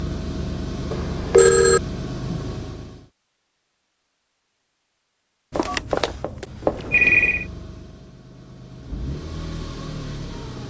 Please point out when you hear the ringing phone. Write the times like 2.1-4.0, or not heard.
0.9-1.8, 5.5-7.5.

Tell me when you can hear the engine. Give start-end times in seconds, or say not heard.
0.0-3.0, 7.2-10.6.